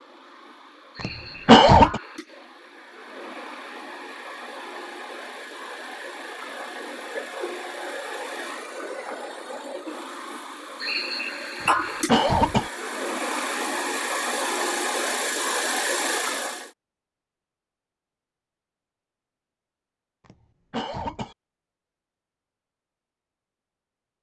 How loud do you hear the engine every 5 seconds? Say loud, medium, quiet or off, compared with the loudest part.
quiet, medium, loud, loud, off.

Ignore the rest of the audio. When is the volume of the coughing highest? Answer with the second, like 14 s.
2 s.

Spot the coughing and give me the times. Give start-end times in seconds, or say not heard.
1.0-2.0, 11.7-12.7, 20.2-21.4.